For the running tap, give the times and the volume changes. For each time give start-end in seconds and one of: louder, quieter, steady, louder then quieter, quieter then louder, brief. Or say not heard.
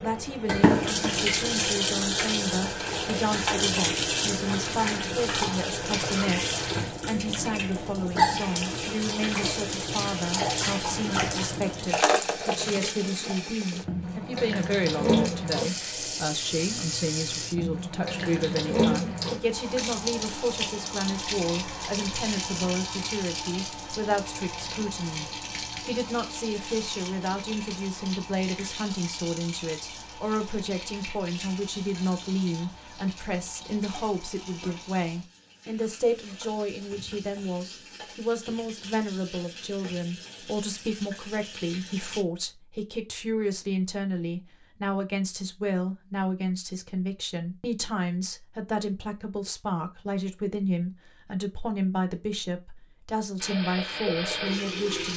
0.0-42.2 quieter
53.4-55.1 brief.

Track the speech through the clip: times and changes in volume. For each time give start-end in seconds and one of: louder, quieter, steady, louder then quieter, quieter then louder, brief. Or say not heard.
0.0-55.1 steady.